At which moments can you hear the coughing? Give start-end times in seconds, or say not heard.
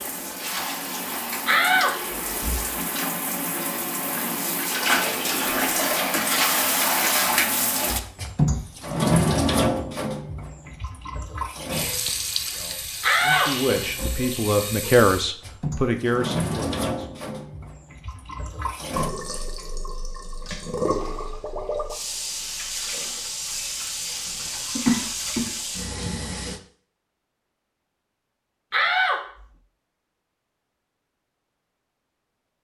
24.2-25.4.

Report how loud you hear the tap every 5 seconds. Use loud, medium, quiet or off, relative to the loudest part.
medium, loud, medium, medium, medium, medium, off.